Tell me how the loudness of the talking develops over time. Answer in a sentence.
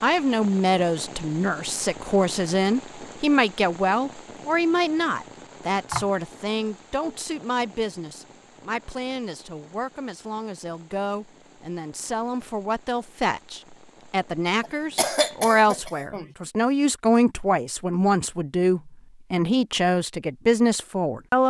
The loudness of the talking goes down, then up.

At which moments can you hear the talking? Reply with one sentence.
You can hear the talking from 0.0 to 21.4 s.